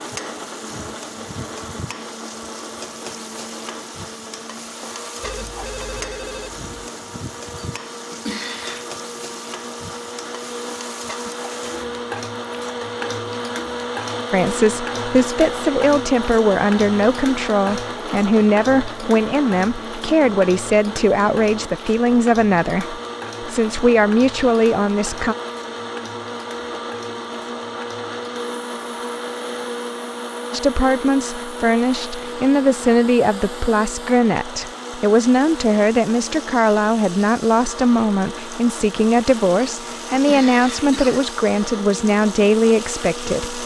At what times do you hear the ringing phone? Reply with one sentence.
You can hear the ringing phone from 5.2 to 6.7 s.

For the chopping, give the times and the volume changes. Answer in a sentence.
You can't hear the chopping here.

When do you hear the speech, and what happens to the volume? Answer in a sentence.
You can hear the speech from 14.3 to 25.4 s, at a steady volume; and from 30.5 to 43.6 s, at a steady volume.